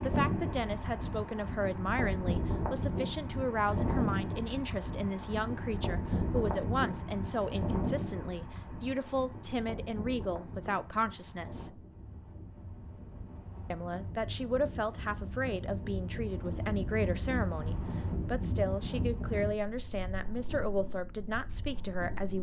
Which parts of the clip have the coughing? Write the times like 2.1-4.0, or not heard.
not heard.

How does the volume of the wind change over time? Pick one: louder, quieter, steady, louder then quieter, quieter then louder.
quieter then louder.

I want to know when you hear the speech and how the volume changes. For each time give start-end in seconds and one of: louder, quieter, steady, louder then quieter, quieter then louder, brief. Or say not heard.
0.0-11.8 steady
13.7-22.3 steady.